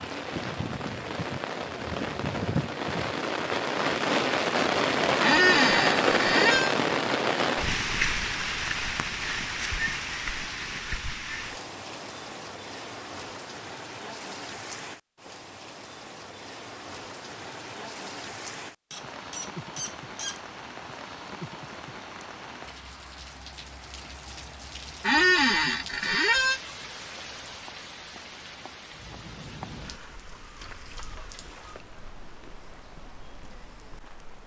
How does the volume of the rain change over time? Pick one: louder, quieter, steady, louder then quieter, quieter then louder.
quieter.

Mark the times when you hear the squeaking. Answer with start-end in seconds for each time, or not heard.
5.2-6.8, 18.9-20.4, 25.0-26.6.